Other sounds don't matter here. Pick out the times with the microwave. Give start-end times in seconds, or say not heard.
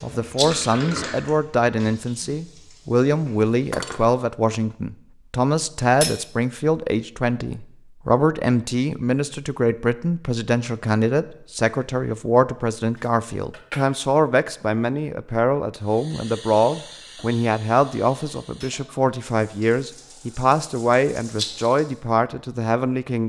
not heard.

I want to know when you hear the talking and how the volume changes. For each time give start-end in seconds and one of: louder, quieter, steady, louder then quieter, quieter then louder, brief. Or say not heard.
0.0-23.2 steady.